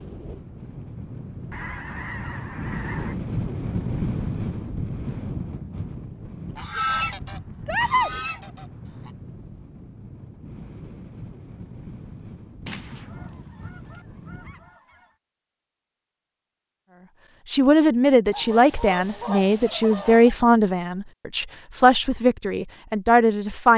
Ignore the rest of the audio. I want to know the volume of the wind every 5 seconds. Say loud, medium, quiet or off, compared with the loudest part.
loud, medium, medium, off, off.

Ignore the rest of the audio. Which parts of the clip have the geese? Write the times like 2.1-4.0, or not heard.
1.5-3.1, 6.5-9.1, 12.7-15.1, 18.3-20.4.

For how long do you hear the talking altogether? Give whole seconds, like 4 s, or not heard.
6 s.